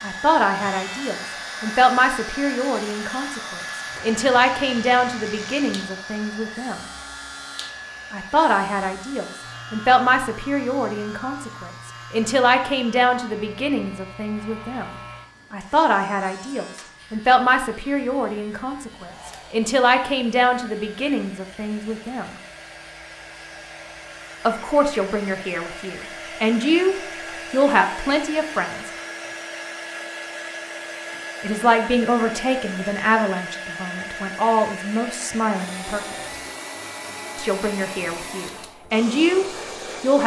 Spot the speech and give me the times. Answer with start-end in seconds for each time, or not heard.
0.0-6.8, 8.1-22.4, 24.4-28.9, 31.4-36.1, 37.4-40.2.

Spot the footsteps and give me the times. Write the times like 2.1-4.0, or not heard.
not heard.